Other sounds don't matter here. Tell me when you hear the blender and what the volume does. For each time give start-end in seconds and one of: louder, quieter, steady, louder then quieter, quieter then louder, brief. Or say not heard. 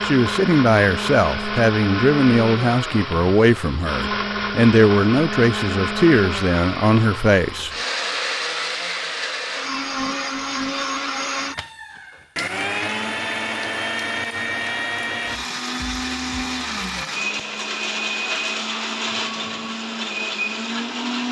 0.0-21.2 steady.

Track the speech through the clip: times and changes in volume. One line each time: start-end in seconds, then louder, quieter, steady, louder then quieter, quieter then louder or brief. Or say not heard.
0.0-7.7 steady.